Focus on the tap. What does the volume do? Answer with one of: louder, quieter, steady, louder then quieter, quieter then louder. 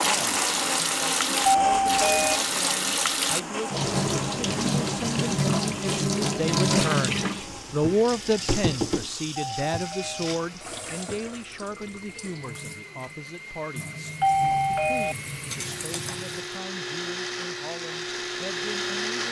quieter.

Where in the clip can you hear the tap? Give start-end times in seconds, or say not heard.
0.0-16.6.